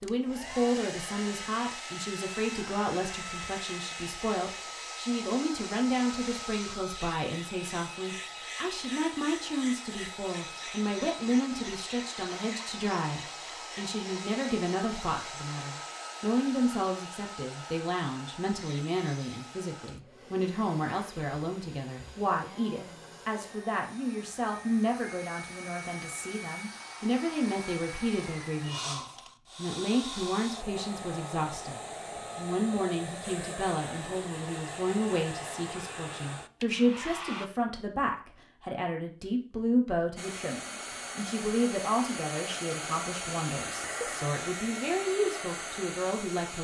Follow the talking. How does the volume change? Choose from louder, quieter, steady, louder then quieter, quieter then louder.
steady.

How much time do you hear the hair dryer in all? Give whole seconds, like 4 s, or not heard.
44 s.